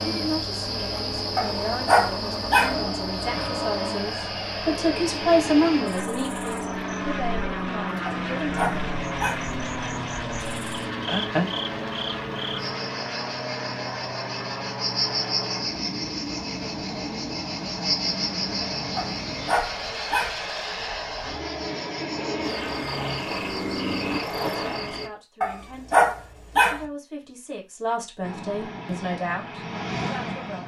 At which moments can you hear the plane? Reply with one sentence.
The plane can be heard from 0.0 to 24.2 s and from 28.2 to 30.6 s.